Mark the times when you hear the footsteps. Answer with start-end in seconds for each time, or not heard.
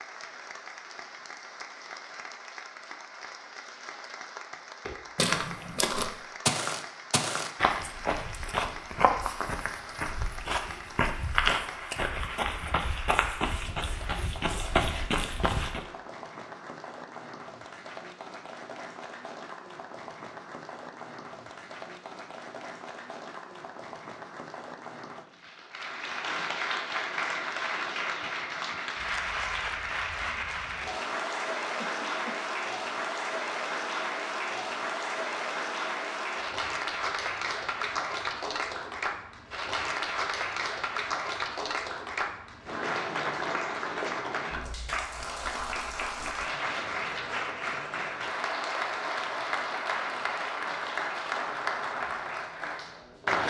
4.8-15.8.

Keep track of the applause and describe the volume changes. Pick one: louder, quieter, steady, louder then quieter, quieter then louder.
louder.